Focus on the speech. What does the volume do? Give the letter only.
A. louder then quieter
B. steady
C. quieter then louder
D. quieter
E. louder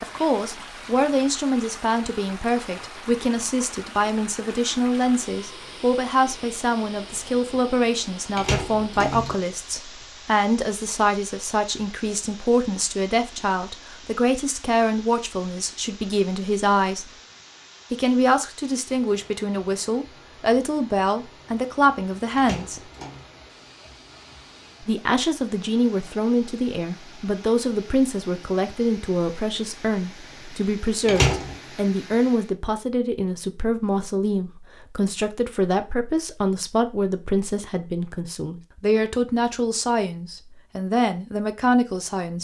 B.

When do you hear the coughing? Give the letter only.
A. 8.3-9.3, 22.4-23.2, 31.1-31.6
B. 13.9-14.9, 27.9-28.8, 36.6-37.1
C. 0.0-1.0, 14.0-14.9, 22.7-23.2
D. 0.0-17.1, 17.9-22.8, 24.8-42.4
A.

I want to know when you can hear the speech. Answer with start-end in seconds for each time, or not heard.
0.0-17.1, 17.9-22.8, 24.8-42.4.